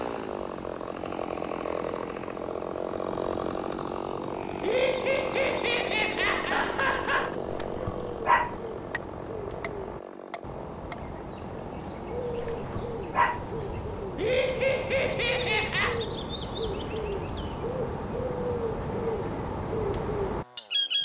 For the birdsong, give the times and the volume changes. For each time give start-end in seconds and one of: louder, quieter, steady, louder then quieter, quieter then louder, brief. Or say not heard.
0.0-21.0 louder.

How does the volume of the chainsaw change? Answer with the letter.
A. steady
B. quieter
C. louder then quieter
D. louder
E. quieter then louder
B.